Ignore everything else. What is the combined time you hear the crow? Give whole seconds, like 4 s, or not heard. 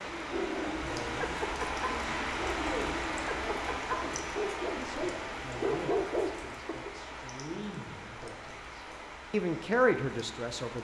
not heard.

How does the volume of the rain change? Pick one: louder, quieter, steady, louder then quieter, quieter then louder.
quieter.